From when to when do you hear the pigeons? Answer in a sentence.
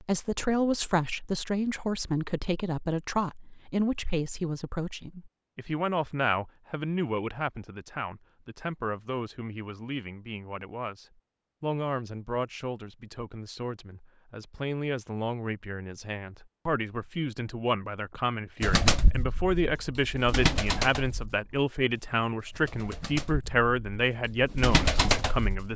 The pigeons can be heard from 18.6 to 25.7 s.